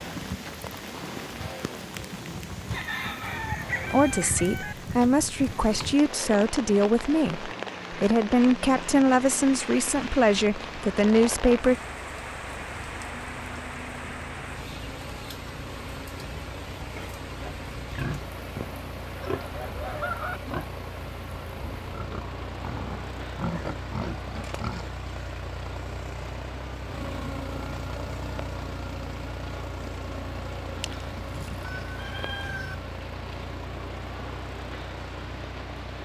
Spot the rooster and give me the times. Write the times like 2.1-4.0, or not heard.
2.7-4.8, 19.2-20.4, 30.8-32.8.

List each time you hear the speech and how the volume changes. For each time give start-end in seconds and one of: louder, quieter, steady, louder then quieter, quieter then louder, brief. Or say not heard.
3.9-11.8 steady.